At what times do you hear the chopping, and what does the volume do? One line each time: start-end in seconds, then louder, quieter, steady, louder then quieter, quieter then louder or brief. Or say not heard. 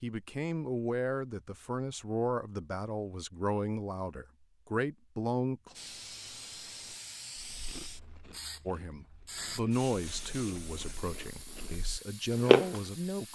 not heard.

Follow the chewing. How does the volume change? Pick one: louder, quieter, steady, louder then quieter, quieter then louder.
quieter then louder.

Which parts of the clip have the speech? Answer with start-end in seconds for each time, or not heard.
0.0-5.8, 8.7-13.3.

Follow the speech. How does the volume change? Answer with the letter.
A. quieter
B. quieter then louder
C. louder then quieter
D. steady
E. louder
D.